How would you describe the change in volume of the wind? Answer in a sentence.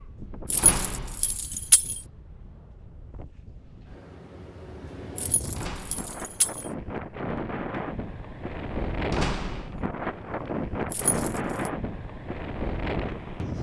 The volume of the wind goes up.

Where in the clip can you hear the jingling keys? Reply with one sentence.
The jingling keys can be heard from 0.5 to 2.0 s, from 5.2 to 6.7 s and from 10.9 to 11.7 s.